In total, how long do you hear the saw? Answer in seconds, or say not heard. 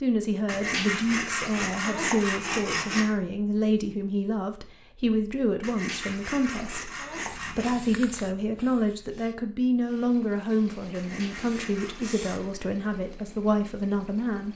6 s.